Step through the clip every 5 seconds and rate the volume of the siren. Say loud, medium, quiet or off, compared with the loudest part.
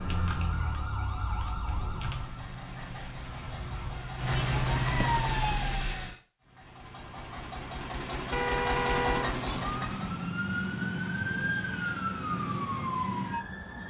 medium, loud, loud.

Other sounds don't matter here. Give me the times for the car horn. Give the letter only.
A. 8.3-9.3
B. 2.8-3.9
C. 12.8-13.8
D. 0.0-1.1
A.